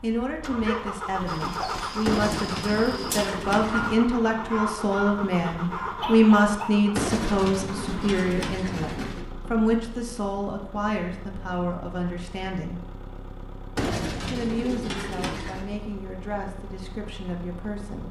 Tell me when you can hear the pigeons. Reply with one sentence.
The pigeons can be heard from 2.0 to 4.0 s, from 7.0 to 9.2 s and from 13.8 to 15.7 s.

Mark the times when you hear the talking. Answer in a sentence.
You can hear the talking from 0.0 to 12.8 s and from 14.2 to 18.0 s.